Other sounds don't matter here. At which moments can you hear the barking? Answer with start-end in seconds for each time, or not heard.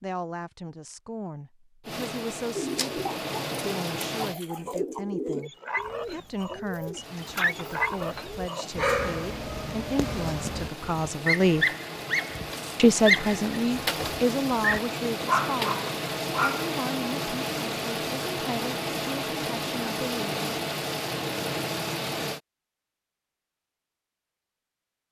5.4-16.6.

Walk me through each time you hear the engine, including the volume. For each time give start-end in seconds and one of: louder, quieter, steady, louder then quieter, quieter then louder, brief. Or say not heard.
1.8-4.3 brief
7.0-22.4 louder.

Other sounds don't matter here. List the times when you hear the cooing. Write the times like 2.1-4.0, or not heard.
2.5-8.4.